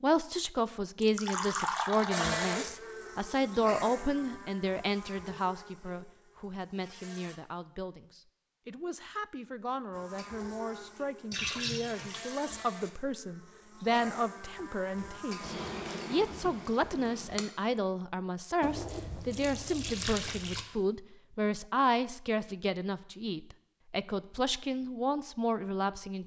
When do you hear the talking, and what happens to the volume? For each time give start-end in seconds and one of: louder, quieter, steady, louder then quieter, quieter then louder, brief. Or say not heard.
0.0-26.2 quieter then louder.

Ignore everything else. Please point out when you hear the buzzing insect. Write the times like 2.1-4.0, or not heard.
2.1-7.4, 9.9-17.4.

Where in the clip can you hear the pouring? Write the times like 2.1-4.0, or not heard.
1.0-2.6, 11.3-12.2, 18.6-20.6.